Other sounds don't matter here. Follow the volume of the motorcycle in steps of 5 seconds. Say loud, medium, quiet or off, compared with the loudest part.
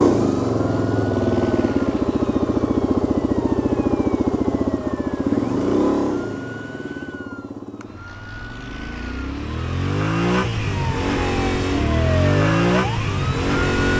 loud, medium, loud.